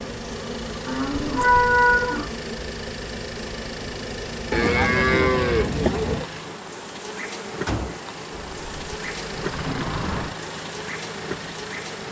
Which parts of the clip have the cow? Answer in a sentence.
The cow can be heard from 0.8 to 2.3 s, from 4.5 to 6.2 s and from 8.3 to 10.3 s.